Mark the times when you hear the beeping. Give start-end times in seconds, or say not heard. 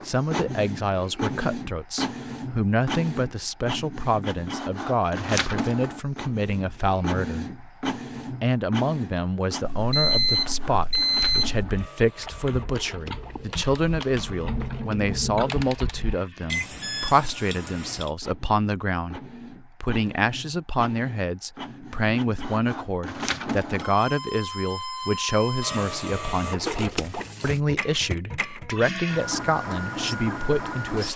9.6-11.7, 16.5-18.1.